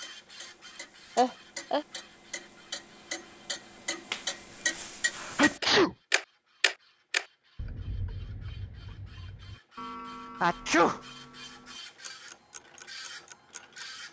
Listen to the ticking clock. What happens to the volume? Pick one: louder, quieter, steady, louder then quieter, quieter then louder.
louder then quieter.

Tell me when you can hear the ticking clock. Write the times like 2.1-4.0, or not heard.
0.0-13.9.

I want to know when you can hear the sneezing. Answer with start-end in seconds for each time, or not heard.
1.1-1.9, 5.2-6.0, 10.4-11.0.